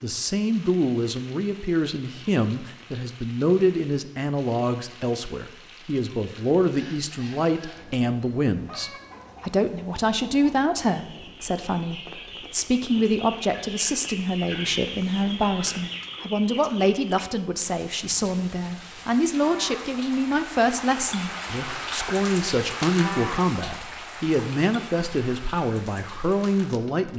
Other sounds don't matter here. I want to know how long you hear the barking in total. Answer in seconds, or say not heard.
not heard.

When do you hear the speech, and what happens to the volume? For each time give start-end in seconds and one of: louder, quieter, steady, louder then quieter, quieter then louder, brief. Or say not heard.
0.0-27.1 steady.